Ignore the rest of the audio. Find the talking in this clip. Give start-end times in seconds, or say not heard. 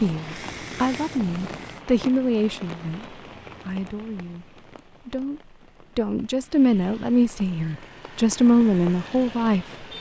0.0-4.5, 5.0-9.7.